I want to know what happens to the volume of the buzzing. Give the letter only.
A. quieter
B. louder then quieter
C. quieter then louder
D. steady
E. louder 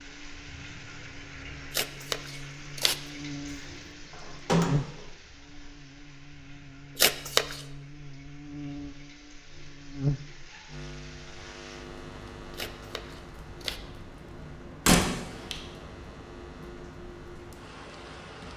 B.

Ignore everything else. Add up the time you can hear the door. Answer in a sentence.
You can hear the door for 2 seconds altogether.